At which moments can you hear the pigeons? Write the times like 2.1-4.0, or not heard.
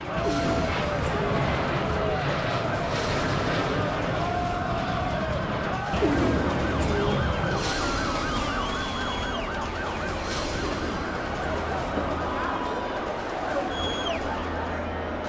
0.1-2.2, 5.9-7.7, 10.7-12.3.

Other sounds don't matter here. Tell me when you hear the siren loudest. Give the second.
8 s.